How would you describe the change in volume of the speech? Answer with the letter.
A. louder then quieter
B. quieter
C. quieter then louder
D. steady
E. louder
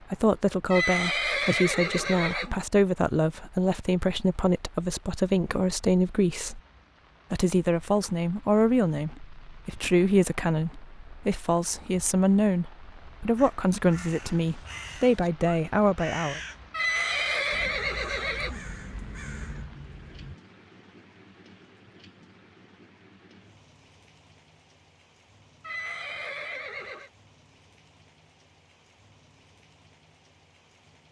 D.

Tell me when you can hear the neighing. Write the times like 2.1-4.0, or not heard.
0.7-2.5, 16.7-18.6, 25.6-27.1.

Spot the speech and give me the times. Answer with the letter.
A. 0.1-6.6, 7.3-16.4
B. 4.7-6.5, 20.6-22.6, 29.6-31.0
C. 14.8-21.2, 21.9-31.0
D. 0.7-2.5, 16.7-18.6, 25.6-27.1
A.